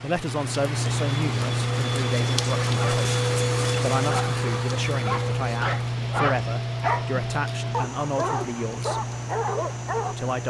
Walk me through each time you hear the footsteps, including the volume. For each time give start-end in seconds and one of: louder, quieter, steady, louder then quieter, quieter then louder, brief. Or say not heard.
not heard.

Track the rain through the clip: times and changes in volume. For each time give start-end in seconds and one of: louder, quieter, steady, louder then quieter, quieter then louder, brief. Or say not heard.
0.0-10.4 quieter.